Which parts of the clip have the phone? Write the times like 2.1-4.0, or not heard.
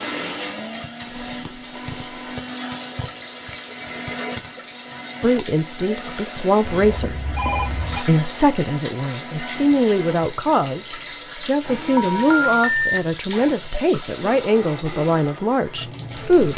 1.1-2.4, 6.7-8.0, 11.9-12.9.